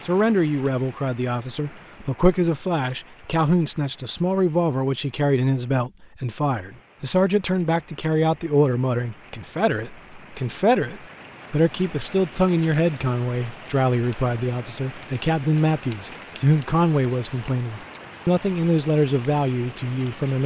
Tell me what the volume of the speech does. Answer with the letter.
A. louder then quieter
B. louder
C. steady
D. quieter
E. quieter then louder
C.